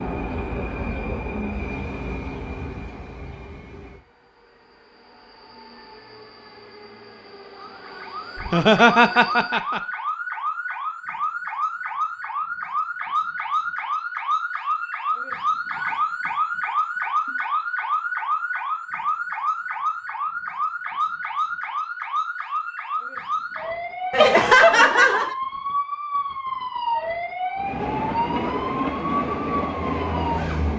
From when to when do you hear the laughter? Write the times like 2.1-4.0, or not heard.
8.3-9.8, 24.1-25.4.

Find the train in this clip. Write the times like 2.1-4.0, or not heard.
0.0-9.6, 27.6-30.7.